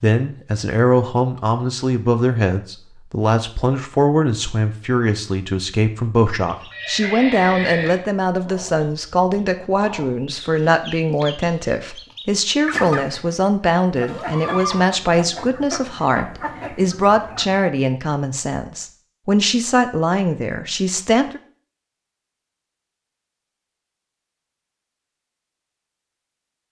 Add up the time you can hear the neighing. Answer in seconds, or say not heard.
2 s.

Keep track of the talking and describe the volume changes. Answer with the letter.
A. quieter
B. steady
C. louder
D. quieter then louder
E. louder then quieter
B.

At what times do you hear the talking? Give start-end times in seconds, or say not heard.
0.0-21.4.